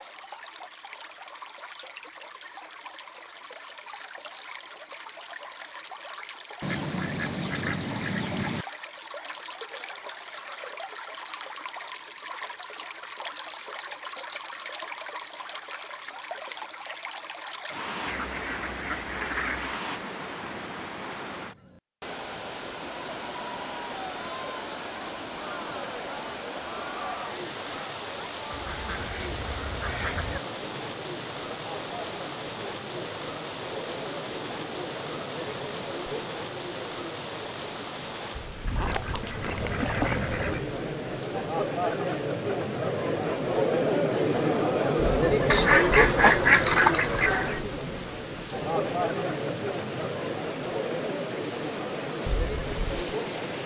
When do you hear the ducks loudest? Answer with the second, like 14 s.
46 s.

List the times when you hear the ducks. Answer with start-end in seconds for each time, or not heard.
6.6-8.7, 18.1-19.8, 28.5-30.4, 38.6-40.6, 45.5-47.6.